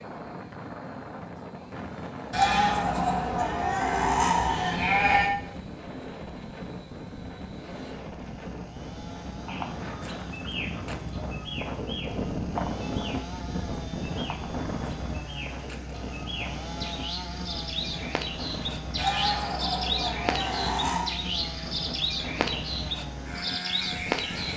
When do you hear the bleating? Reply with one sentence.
You can hear the bleating from 2.3 to 5.3 s and from 18.9 to 21.1 s.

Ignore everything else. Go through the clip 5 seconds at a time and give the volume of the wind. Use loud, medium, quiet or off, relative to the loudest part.
medium, medium, loud, medium, medium.